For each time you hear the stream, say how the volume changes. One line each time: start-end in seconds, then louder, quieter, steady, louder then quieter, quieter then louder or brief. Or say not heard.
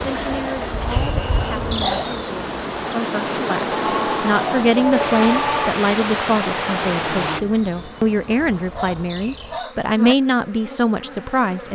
0.0-7.4 louder.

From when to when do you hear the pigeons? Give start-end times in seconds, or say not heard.
3.7-5.7.